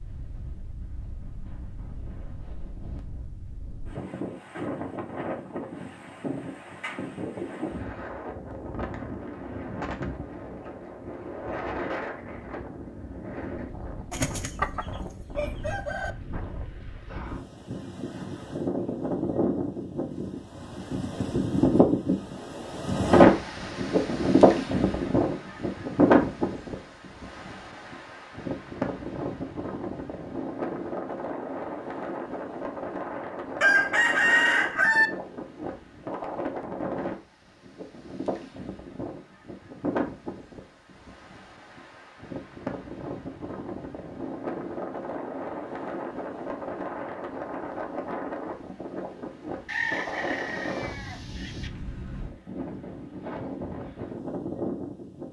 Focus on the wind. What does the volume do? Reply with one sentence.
The volume of the wind goes up, then down.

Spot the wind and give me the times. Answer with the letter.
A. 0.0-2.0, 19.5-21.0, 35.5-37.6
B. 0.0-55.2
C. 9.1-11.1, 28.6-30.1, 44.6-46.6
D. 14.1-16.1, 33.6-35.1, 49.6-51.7
B.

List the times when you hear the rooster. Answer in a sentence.
The rooster can be heard from 14.1 to 16.1 s, from 33.6 to 35.1 s and from 49.6 to 51.7 s.